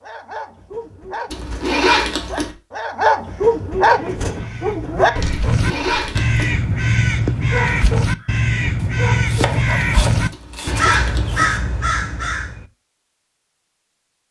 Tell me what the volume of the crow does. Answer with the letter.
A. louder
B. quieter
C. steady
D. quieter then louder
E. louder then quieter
A.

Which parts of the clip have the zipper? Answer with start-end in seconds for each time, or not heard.
1.3-2.5, 5.5-6.5, 10.3-11.4.